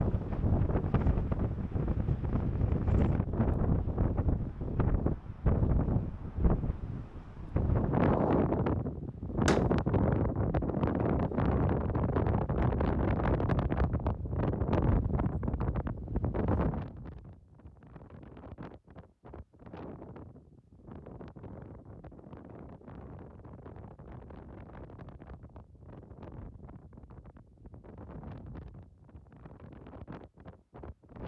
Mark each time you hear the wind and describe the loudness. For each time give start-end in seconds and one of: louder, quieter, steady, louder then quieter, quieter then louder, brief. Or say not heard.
0.0-31.2 quieter.